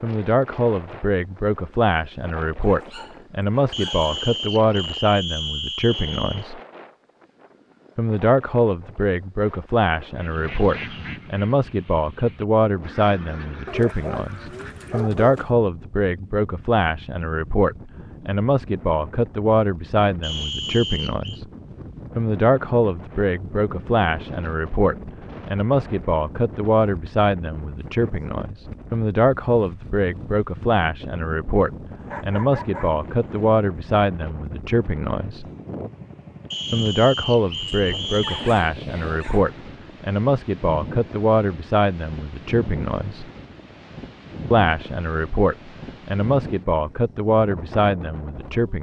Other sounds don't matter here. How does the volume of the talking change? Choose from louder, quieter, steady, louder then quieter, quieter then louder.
steady.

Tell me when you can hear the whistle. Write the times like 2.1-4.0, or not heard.
3.7-6.5, 20.2-21.4, 36.5-38.5.